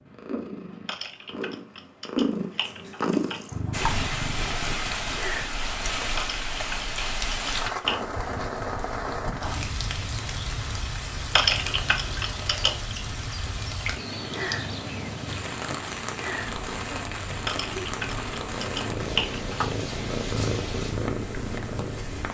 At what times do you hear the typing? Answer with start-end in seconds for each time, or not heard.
0.8-3.5, 6.2-8.0, 11.3-12.8, 17.4-19.8.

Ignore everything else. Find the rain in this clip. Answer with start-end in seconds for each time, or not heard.
3.7-22.2.